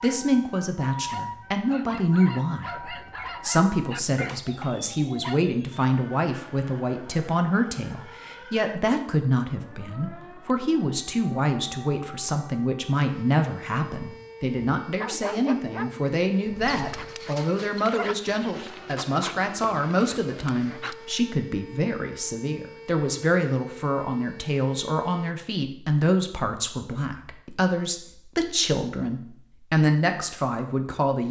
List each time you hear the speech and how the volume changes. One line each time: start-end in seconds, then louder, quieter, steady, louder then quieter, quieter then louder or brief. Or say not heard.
0.0-31.2 steady.